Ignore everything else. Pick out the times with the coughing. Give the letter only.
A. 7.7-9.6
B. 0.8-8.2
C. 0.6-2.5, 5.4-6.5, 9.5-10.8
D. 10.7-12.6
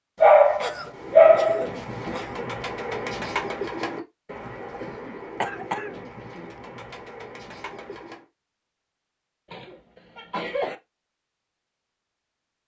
C.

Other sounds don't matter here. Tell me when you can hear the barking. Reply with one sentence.
The barking can be heard from 0.2 to 2.1 s.